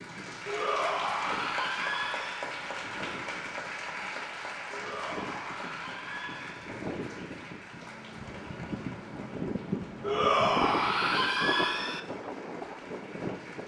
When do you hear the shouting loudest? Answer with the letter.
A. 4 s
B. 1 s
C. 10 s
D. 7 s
C.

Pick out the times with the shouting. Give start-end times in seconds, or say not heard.
0.5-2.5, 4.7-6.7, 10.0-12.0.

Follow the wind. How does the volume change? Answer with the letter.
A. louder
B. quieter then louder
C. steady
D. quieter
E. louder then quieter
A.